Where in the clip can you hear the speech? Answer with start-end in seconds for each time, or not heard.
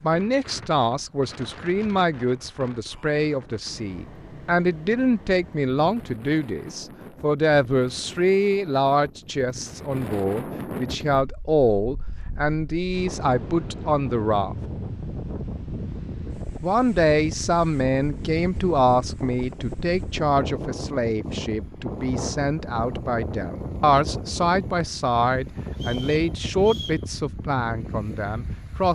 0.0-14.6, 16.6-28.9.